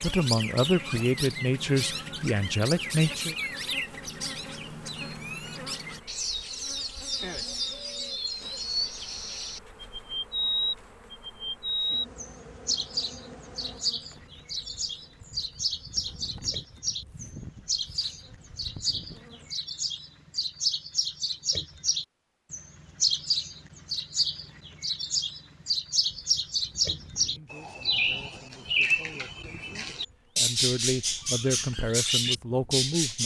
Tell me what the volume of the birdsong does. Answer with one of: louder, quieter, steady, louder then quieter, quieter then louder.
louder.